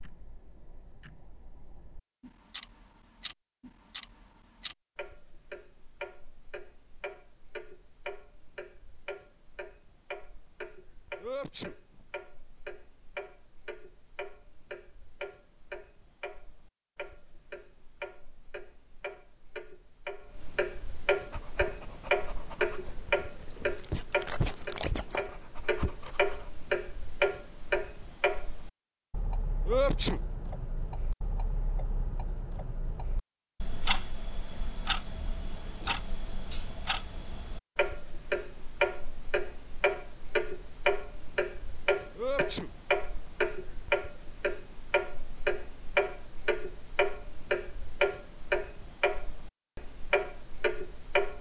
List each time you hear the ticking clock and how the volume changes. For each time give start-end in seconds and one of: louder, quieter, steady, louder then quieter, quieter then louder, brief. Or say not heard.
0.0-51.3 louder.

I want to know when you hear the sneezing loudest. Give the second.
30 s.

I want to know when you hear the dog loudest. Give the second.
24 s.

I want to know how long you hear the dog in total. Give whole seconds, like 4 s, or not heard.
5 s.